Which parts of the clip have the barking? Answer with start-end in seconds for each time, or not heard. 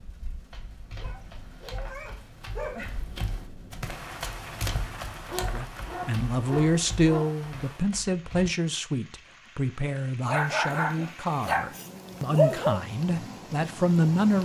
0.9-3.0, 5.2-7.3, 10.2-12.8.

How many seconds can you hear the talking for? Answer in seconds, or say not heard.
9 s.